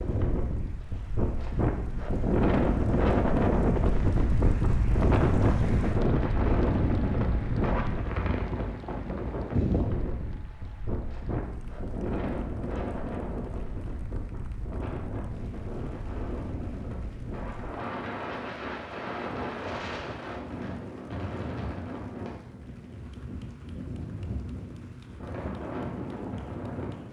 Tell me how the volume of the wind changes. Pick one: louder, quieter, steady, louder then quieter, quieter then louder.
quieter.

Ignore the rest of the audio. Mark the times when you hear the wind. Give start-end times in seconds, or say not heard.
0.0-27.0.